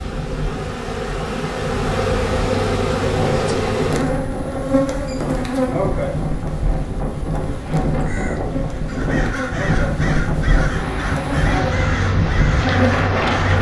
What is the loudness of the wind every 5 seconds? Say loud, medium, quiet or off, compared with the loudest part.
medium, loud, loud.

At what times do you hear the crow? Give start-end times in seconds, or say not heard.
8.0-13.5.